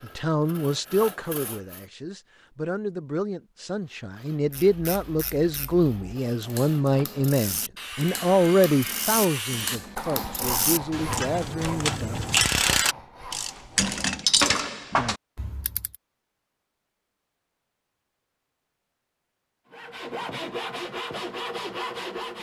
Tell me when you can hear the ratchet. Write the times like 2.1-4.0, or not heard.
4.4-15.9.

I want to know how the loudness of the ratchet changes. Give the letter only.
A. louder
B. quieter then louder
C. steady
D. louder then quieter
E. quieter
A.